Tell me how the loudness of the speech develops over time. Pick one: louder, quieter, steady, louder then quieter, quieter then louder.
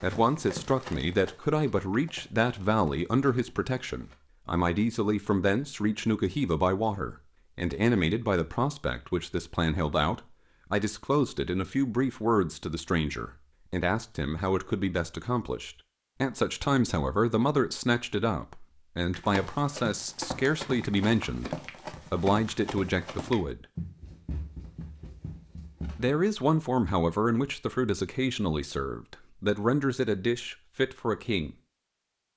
steady.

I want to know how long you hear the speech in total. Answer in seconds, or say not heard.
29 s.